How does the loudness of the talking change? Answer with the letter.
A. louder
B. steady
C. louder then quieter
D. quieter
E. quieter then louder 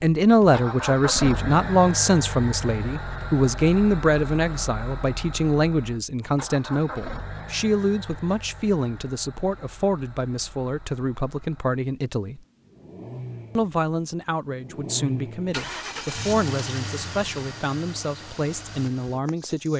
D.